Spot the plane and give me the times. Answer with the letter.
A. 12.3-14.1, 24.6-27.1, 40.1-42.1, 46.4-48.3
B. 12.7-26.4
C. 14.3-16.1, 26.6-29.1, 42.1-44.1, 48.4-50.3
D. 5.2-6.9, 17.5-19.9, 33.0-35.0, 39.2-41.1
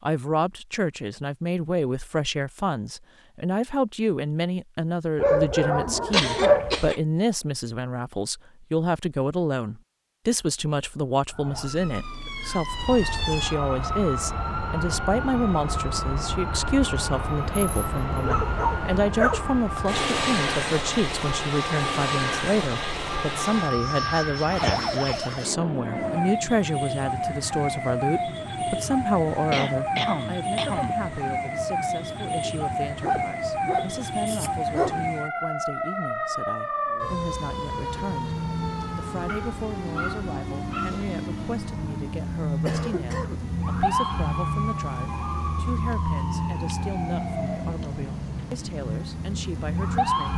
B.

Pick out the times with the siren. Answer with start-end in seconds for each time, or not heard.
11.3-50.3.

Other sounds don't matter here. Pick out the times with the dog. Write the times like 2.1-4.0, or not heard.
5.2-6.9, 17.5-19.9, 33.0-35.0, 39.2-41.1.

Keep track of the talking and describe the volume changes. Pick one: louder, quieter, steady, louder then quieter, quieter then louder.
quieter.